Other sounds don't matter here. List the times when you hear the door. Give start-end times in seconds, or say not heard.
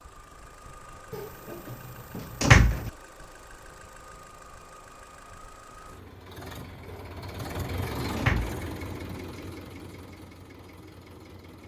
1.1-2.9, 6.8-8.6.